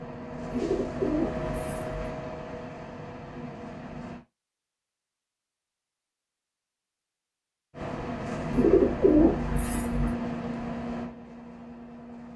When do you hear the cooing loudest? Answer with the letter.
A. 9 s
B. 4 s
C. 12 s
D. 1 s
A.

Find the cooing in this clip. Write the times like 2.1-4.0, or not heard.
0.5-1.9, 8.5-10.2.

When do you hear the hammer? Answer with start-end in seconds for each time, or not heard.
not heard.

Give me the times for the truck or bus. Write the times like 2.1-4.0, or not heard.
0.0-4.2, 7.7-12.3.